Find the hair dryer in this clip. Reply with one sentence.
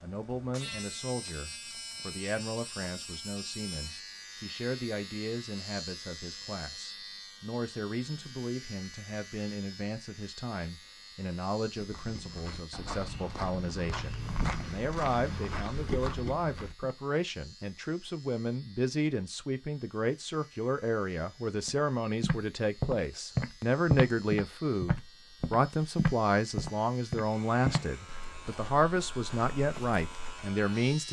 The hair dryer can't be heard in this clip.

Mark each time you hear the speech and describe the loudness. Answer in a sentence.
You can hear the speech from 0.0 to 31.0 s, getting louder.